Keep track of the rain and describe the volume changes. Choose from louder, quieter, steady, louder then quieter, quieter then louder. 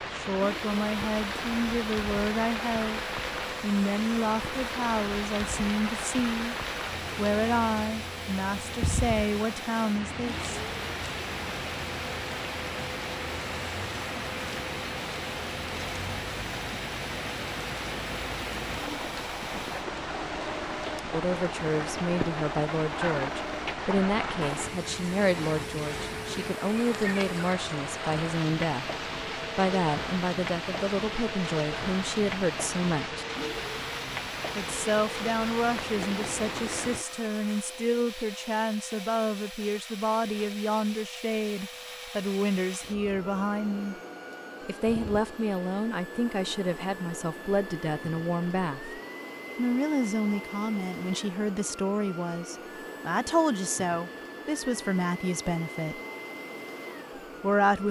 steady.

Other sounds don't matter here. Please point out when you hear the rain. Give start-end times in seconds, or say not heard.
0.0-37.0.